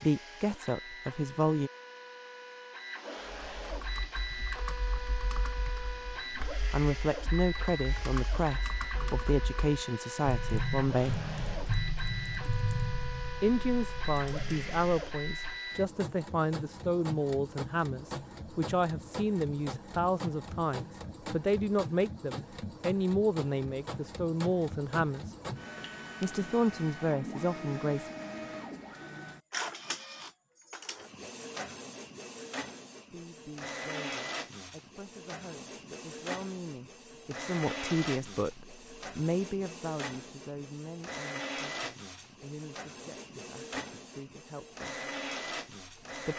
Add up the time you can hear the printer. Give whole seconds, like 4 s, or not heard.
46 s.